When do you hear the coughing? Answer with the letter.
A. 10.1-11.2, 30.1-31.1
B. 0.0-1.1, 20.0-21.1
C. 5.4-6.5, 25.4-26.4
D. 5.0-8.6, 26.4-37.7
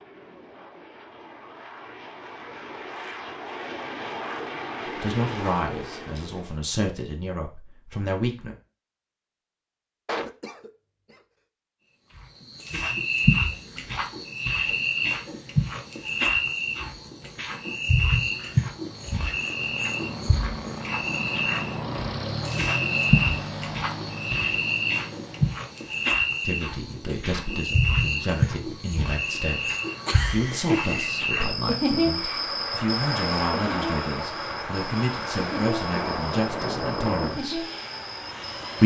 A.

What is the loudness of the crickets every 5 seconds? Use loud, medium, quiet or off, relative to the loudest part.
off, off, loud, loud, loud, loud, loud, medium.